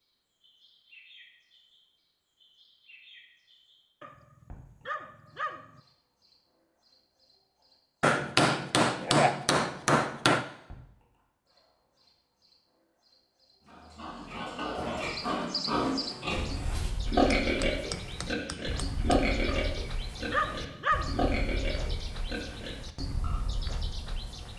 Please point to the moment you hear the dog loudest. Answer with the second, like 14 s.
21 s.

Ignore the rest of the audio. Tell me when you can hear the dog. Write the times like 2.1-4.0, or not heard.
4.0-5.8, 19.4-21.3.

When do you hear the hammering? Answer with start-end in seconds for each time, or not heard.
8.0-10.4, 17.3-19.2.